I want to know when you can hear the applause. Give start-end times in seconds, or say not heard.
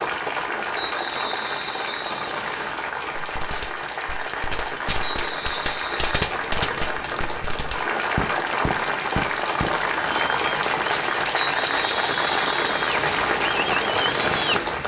0.0-14.8.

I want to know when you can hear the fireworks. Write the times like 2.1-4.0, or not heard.
3.1-14.6.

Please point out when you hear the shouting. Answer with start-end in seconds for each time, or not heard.
not heard.